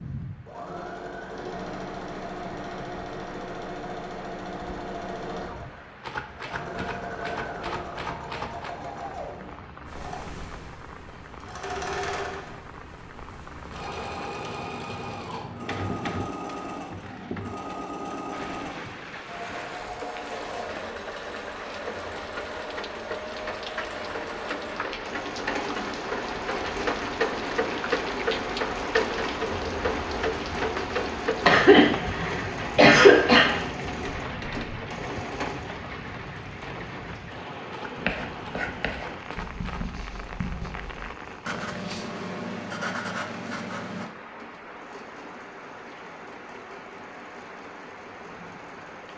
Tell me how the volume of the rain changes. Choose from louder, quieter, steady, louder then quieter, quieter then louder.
louder then quieter.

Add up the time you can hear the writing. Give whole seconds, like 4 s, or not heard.
6 s.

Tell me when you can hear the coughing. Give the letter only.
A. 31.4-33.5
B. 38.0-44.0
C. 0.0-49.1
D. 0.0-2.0
A.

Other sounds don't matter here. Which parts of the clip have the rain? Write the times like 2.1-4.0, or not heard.
0.0-49.1.